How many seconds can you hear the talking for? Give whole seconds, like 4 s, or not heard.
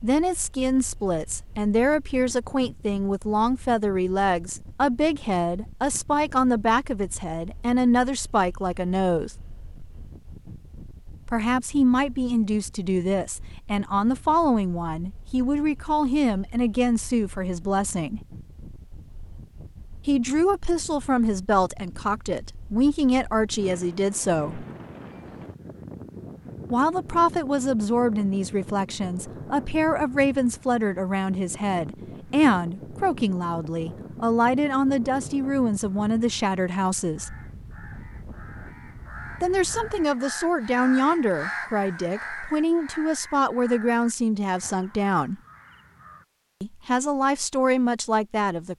40 s.